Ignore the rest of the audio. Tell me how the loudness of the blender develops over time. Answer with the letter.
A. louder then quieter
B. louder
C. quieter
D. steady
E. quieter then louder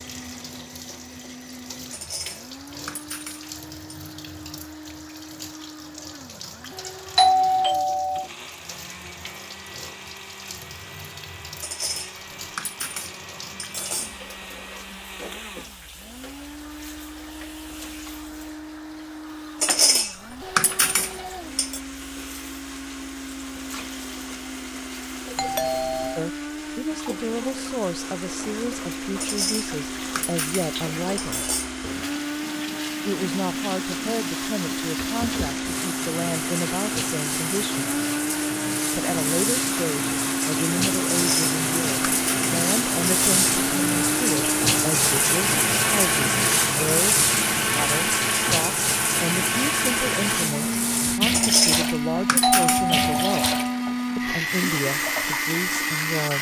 B.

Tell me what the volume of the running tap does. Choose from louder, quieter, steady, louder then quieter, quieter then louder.
louder.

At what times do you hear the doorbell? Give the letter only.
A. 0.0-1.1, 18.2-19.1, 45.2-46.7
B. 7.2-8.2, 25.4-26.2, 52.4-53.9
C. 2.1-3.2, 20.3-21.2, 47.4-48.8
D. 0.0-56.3
B.